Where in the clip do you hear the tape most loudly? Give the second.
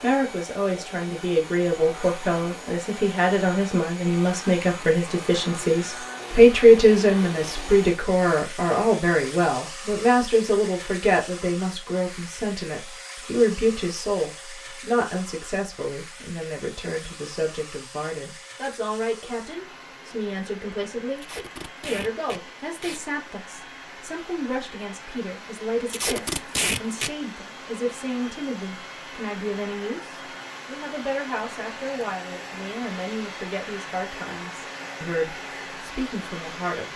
27 s.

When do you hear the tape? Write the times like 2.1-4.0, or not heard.
7.3-7.8, 21.1-23.0, 25.9-27.1.